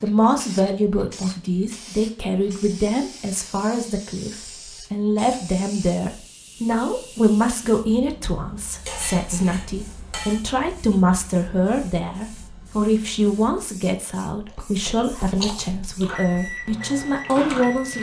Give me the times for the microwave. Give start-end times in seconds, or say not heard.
16.1-17.9.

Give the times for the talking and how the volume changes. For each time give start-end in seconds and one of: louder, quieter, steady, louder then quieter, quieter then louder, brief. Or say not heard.
0.0-17.9 steady.